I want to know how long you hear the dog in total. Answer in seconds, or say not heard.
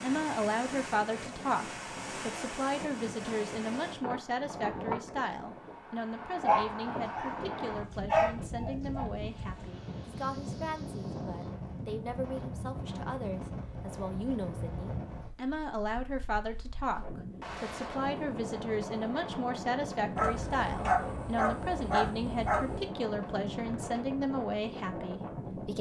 5 s.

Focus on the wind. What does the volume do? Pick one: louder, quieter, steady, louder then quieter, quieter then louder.
steady.